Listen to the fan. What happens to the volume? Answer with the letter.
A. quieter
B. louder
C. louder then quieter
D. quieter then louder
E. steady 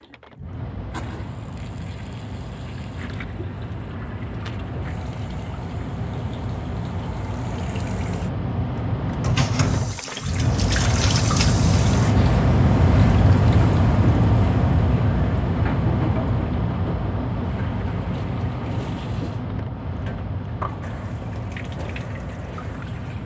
C.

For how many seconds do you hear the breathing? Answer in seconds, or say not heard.
not heard.